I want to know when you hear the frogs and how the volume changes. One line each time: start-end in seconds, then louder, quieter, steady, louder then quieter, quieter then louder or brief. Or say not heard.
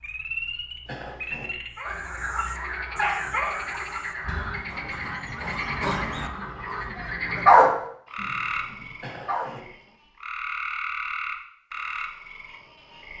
0.0-13.1 steady.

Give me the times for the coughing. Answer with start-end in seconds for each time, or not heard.
0.8-1.5, 9.0-9.6.